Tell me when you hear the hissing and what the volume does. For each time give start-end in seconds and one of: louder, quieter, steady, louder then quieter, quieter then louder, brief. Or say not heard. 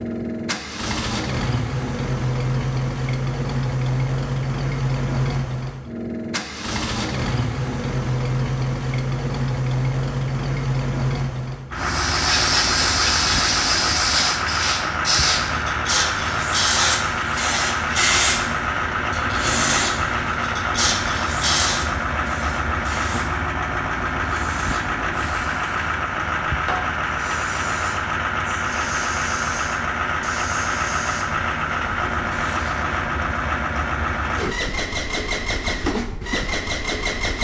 11.8-32.9 quieter.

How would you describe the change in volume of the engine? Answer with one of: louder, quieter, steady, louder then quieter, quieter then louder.
steady.